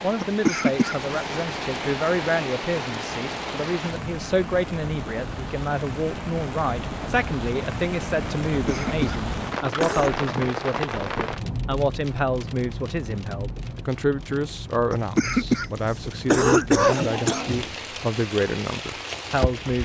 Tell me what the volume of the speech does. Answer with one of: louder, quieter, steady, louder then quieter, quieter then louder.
steady.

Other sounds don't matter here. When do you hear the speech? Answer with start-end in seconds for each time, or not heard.
0.0-19.8.